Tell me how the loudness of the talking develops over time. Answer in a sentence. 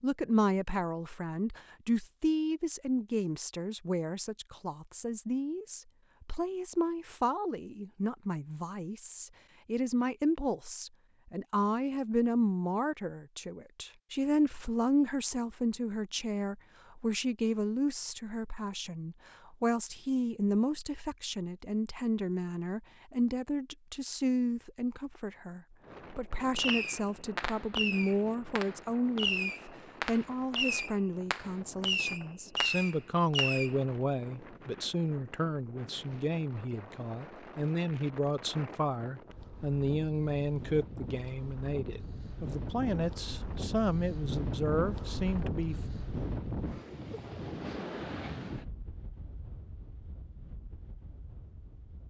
The loudness of the talking stays about the same.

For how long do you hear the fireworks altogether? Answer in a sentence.
The fireworks can be heard for 7 seconds in total.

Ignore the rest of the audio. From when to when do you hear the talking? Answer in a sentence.
The talking can be heard from 0.0 to 45.8 s.